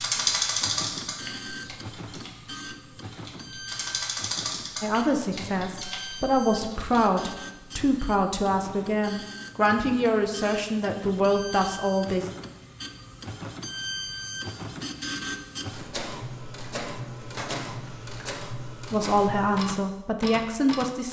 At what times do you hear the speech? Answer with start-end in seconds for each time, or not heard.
4.8-12.3, 18.2-21.0.